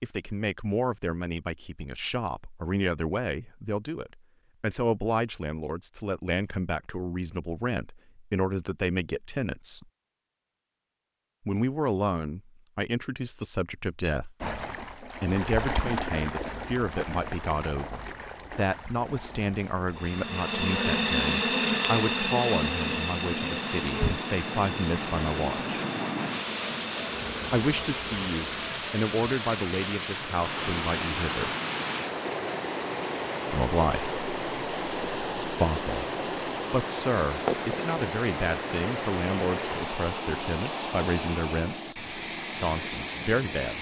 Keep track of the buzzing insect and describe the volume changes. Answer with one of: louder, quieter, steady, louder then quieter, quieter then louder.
quieter.